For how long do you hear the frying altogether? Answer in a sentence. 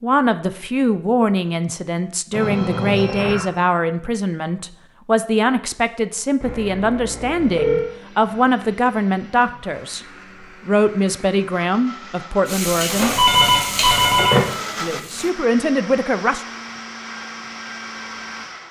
You can hear the frying for 3 seconds altogether.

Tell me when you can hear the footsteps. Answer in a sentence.
The footsteps can't be heard in this clip.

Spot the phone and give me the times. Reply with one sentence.
You can hear the phone from 2.3 to 3.5 s, from 6.4 to 7.9 s and from 13.2 to 14.5 s.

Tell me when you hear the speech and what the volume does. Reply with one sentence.
You can hear the speech from 0.0 to 10.1 s, at a steady volume; briefly from 10.7 to 13.1 s; and briefly from 14.8 to 16.4 s.